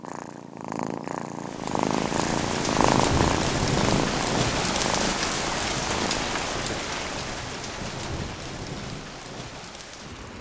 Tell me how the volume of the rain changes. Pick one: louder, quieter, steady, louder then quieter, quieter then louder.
quieter.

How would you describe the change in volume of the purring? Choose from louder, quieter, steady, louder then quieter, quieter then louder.
louder then quieter.